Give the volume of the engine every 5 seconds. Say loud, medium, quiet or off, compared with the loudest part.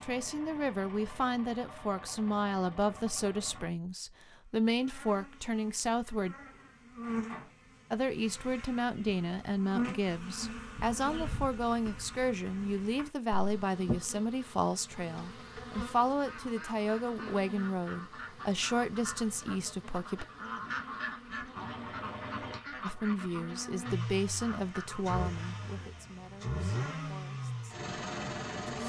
medium, off, off, off, medium, loud.